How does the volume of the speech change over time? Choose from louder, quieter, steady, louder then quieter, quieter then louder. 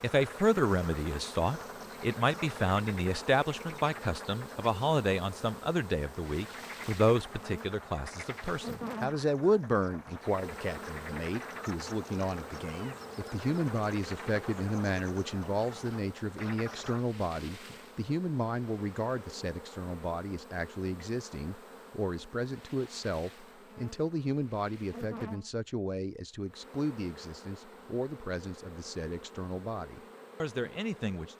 quieter.